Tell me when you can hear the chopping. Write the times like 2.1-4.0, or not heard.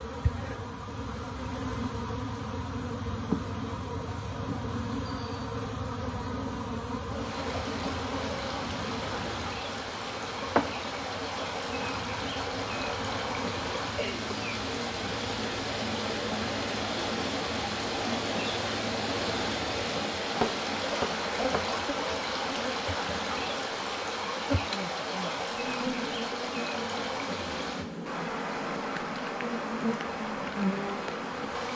20.4-21.7.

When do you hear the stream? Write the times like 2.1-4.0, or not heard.
7.0-31.7.